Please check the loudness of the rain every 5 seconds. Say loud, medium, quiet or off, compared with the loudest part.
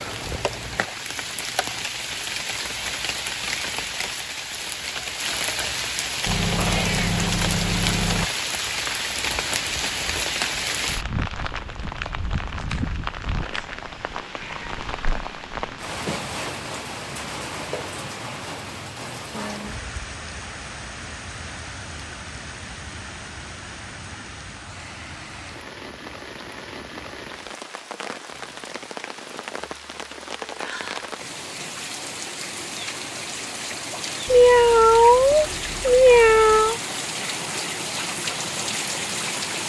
loud, loud, loud, medium, medium, medium, medium, loud.